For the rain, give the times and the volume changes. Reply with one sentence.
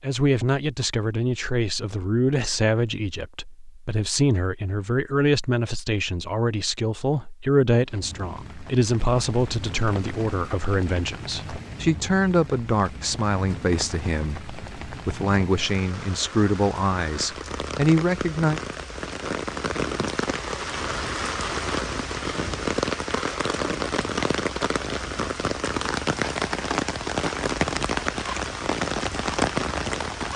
The rain can be heard from 7.8 to 30.3 s, getting louder.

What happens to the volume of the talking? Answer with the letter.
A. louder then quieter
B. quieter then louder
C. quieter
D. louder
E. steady
E.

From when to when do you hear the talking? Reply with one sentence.
You can hear the talking from 0.0 to 18.6 s.